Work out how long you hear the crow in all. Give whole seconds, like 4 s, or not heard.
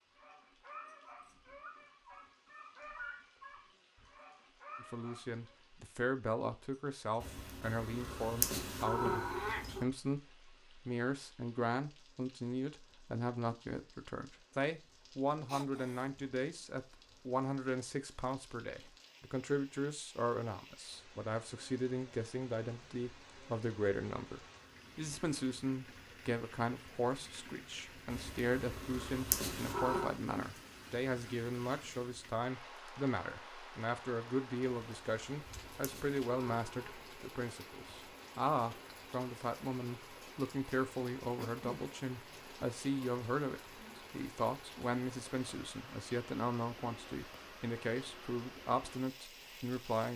not heard.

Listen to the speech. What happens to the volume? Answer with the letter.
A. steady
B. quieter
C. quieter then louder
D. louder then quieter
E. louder
A.